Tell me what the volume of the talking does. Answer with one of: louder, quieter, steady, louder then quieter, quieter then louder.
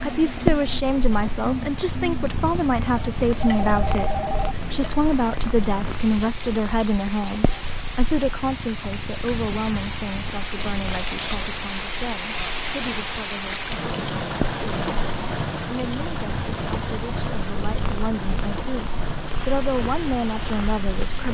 quieter then louder.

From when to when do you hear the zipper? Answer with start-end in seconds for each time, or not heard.
not heard.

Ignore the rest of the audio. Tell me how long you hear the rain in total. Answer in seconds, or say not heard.
21 s.